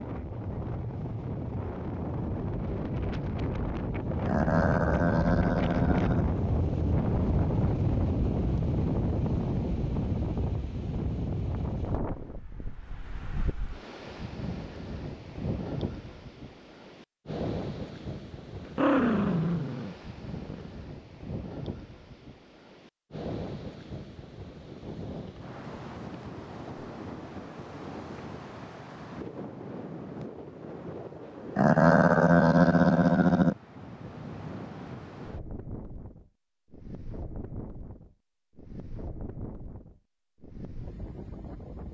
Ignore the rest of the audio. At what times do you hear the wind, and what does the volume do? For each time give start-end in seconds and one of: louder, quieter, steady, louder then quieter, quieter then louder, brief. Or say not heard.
0.0-41.8 quieter.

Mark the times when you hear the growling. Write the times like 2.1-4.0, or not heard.
4.2-6.2, 18.6-20.7, 31.6-33.5.